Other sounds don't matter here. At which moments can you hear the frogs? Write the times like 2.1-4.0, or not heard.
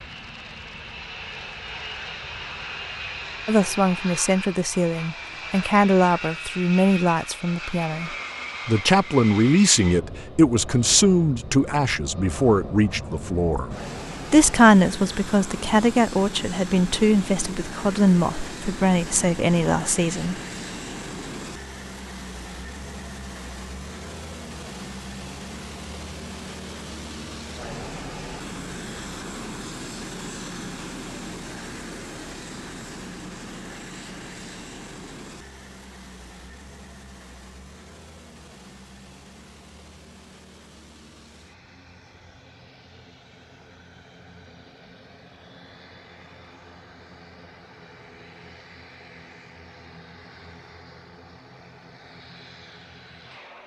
not heard.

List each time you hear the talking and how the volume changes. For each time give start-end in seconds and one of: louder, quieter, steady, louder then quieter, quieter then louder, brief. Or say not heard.
3.5-20.4 steady.